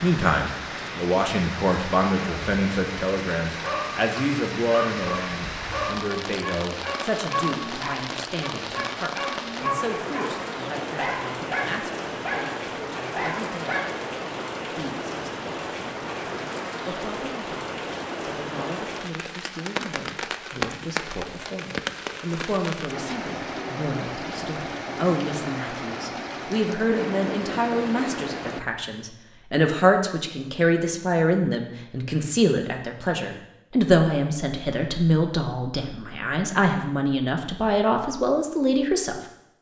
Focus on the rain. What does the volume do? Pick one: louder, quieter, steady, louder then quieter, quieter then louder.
steady.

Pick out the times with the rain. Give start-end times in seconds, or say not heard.
0.0-28.6.